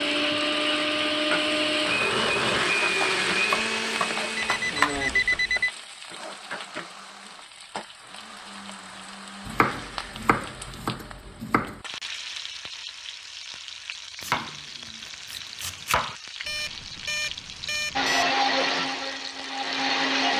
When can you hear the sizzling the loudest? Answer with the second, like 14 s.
3 s.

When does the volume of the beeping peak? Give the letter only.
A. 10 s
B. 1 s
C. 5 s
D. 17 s
C.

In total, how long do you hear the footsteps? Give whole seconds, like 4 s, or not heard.
not heard.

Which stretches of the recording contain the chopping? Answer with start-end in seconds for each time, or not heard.
3.5-5.2, 9.4-11.8, 14.2-16.1.